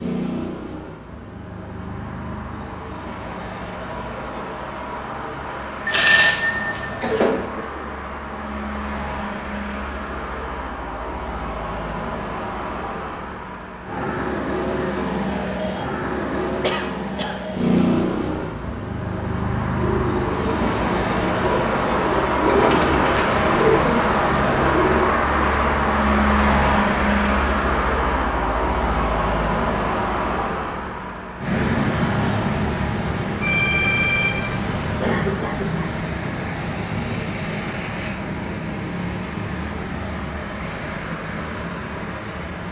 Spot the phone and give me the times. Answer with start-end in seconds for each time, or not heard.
5.8-7.5, 33.4-34.6.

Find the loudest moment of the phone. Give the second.
6 s.